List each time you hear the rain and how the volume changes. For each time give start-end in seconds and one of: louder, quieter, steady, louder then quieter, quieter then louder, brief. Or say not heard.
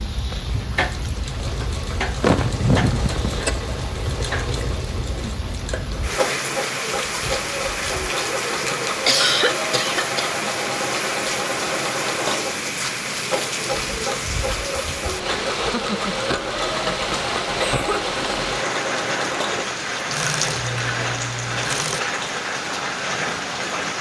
0.0-23.9 louder.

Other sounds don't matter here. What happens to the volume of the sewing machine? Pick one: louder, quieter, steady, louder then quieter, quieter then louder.
steady.